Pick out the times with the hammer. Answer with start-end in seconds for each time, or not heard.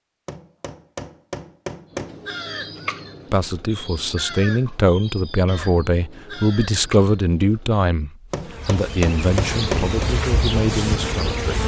0.2-2.2, 8.3-10.1.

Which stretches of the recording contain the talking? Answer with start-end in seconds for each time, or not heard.
3.3-11.6.